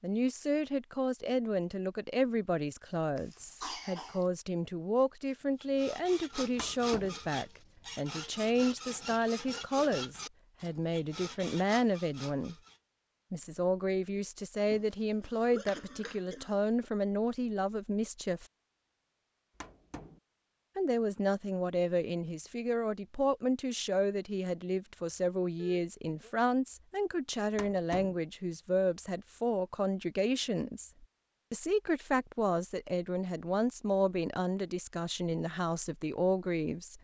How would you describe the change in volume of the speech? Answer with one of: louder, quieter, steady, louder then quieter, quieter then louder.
steady.